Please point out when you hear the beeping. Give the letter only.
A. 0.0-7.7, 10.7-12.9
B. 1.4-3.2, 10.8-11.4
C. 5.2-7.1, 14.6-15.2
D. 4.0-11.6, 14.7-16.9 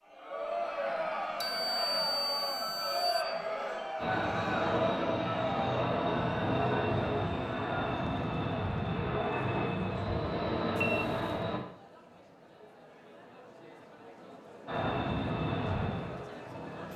B.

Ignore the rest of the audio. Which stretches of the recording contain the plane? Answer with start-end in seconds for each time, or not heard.
4.0-11.6, 14.7-16.9.